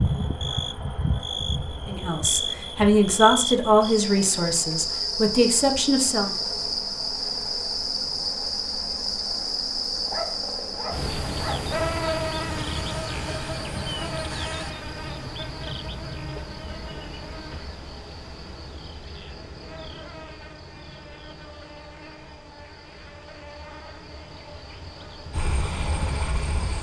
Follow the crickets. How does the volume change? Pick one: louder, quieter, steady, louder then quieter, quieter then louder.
quieter.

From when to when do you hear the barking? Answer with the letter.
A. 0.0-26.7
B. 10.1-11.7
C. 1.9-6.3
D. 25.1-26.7
B.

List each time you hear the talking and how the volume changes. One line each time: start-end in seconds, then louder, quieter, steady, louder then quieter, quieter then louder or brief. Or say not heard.
1.9-6.3 quieter then louder.